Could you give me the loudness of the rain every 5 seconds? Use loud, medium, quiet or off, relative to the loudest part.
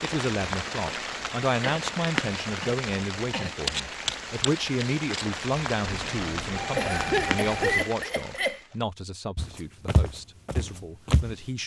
loud, loud, off.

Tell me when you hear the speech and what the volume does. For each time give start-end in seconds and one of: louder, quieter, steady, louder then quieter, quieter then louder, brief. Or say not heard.
0.0-11.6 quieter.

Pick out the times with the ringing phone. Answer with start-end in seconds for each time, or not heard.
5.8-7.8.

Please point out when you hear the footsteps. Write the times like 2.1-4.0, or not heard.
9.3-11.3.